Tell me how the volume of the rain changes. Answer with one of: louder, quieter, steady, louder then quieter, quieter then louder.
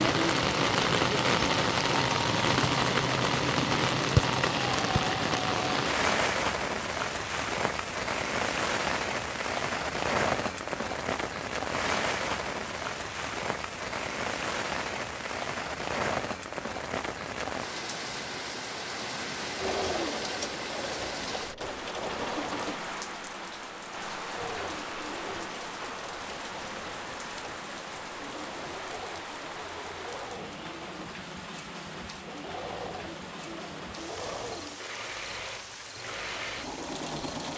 quieter.